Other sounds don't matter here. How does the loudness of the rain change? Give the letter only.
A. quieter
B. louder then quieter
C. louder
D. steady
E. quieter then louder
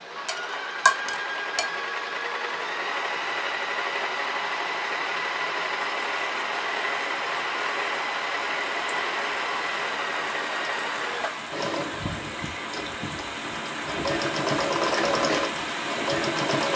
C.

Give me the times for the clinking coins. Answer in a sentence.
You can hear the clinking coins from 0.2 to 1.6 s.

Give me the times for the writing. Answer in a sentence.
You can't hear the writing here.